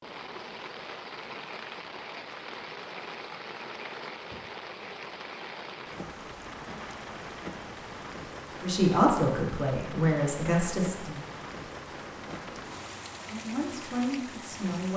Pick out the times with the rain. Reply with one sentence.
The rain can be heard from 0.0 to 14.9 s.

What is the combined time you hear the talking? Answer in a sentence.
The talking can be heard for 4 seconds in total.